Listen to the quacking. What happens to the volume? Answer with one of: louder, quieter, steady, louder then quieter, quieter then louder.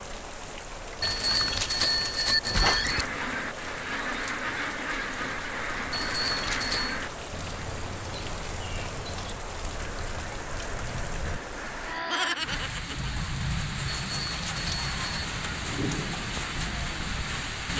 quieter.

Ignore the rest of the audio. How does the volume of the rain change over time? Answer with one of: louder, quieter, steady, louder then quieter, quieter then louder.
louder.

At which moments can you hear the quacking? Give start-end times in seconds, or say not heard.
2.6-12.7.